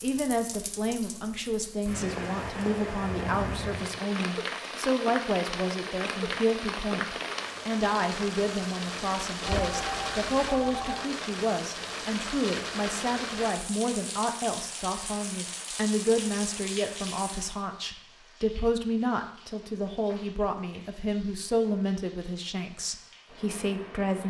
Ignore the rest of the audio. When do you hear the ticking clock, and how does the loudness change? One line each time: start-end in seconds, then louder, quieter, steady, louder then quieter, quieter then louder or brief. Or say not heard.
not heard.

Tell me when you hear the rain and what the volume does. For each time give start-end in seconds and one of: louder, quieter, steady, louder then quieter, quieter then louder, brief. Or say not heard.
0.0-24.2 quieter.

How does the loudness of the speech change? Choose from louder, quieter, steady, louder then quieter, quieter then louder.
steady.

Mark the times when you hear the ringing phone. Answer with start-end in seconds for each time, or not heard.
9.4-10.9.